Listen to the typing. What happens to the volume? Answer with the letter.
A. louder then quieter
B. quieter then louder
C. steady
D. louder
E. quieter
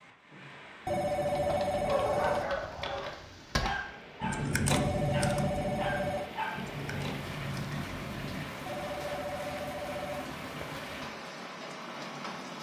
A.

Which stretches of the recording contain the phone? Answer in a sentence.
The phone can be heard from 0.8 to 2.5 s, from 4.7 to 6.3 s and from 8.7 to 10.8 s.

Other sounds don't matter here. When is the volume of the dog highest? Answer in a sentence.
The volume of the dog peaks at 2 seconds.